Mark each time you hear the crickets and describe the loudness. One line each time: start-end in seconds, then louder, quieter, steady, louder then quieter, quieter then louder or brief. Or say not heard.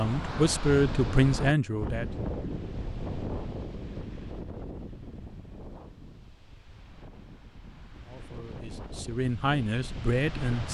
not heard.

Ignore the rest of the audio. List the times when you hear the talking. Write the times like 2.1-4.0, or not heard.
0.0-2.0, 8.0-10.6.